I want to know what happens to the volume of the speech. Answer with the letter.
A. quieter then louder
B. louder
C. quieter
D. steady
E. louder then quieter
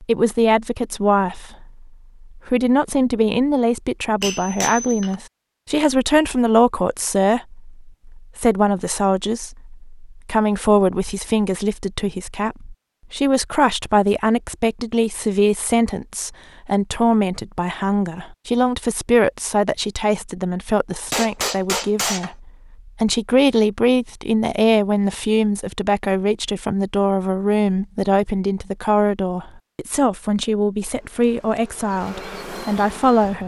D.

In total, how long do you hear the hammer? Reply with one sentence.
You can hear the hammer for 2 seconds altogether.